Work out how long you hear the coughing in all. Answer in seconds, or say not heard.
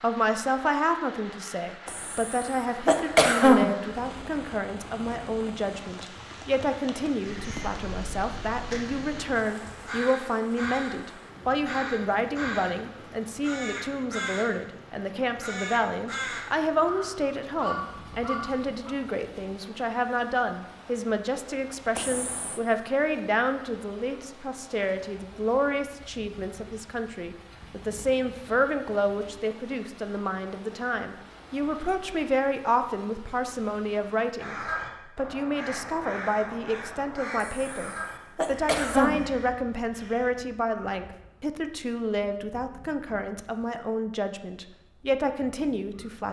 4 s.